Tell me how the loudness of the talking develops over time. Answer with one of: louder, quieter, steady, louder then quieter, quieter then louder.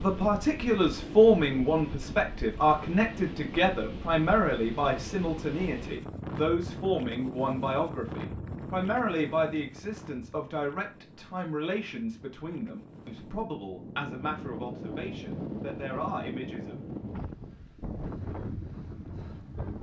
quieter.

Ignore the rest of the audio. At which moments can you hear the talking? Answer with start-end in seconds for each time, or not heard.
0.0-16.8.